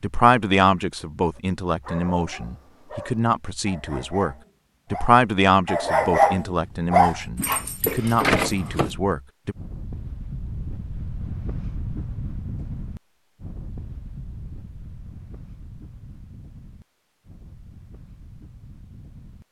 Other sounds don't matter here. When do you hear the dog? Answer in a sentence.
You can hear the dog from 1.4 to 8.9 s.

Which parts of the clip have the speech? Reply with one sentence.
You can hear the speech from 0.0 to 9.6 s.